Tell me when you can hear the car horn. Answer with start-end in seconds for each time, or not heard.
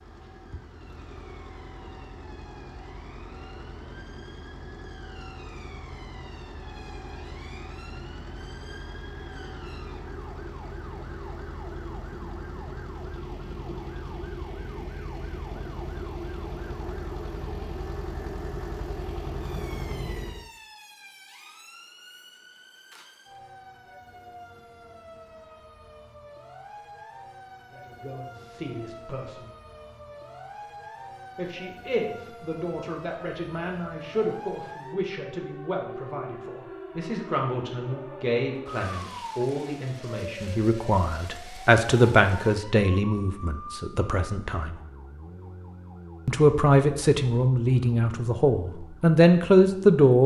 not heard.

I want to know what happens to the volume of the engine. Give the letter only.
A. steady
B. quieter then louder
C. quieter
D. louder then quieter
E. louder
E.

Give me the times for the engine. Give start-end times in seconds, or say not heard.
0.0-20.5.